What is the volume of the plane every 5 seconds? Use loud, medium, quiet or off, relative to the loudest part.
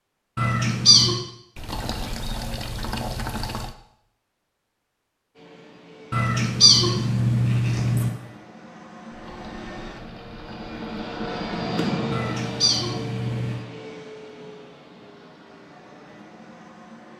off, medium, loud, quiet.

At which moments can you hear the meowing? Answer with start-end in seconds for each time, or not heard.
0.3-1.2, 6.1-8.1, 12.1-13.7.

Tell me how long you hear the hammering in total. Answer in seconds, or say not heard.
not heard.